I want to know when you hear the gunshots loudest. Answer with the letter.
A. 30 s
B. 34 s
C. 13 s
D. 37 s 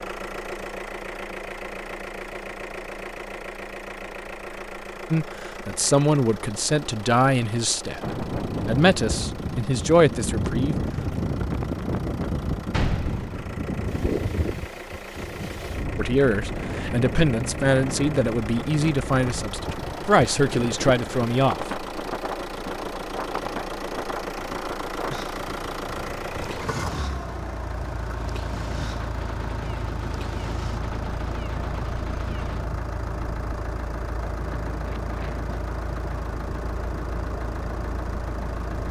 C.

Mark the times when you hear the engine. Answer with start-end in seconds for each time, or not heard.
0.0-38.8.